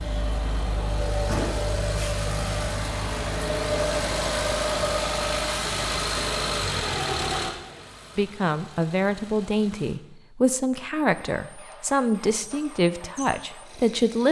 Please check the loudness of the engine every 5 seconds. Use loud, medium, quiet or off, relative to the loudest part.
loud, loud, quiet.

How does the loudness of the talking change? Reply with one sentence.
The volume of the talking stays about the same.